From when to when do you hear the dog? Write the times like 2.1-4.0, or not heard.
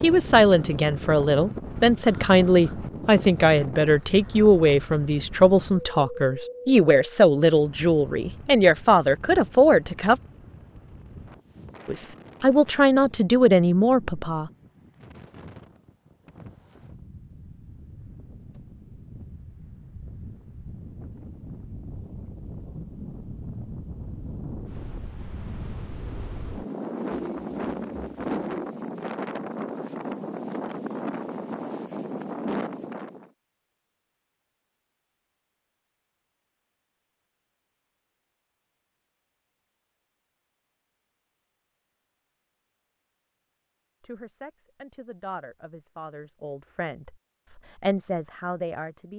not heard.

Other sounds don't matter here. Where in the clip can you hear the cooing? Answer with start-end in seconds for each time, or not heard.
27.1-28.6.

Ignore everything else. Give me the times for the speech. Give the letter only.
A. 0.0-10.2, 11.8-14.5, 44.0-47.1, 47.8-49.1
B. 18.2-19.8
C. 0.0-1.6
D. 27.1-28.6
A.